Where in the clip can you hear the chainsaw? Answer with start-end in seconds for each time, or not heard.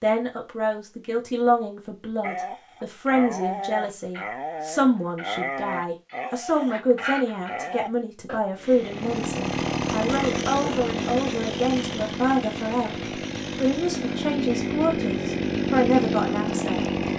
8.6-17.1.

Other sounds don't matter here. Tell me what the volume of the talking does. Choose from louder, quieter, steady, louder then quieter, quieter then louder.
steady.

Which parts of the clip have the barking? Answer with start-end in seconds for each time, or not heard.
2.2-8.4.